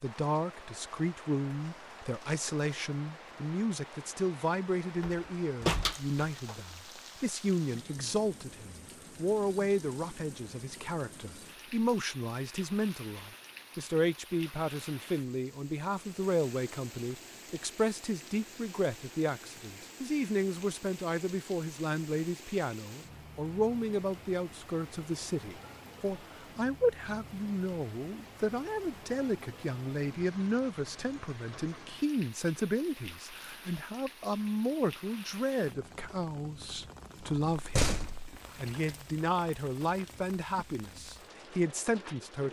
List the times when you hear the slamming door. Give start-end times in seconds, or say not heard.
5.0-6.5, 37.5-38.4.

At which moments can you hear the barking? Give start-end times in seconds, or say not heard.
not heard.